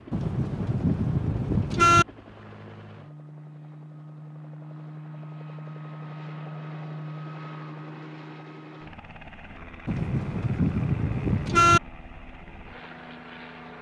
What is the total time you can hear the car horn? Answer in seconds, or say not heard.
4 s.